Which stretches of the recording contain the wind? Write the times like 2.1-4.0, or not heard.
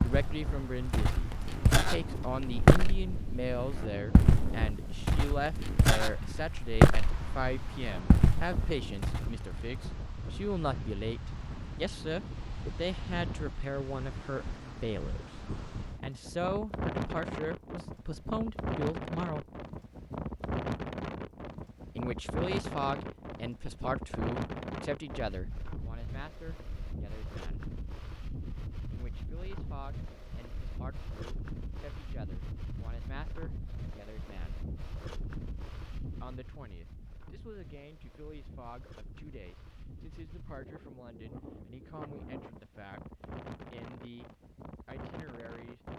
0.0-45.9.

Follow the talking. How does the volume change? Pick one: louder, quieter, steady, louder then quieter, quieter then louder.
quieter.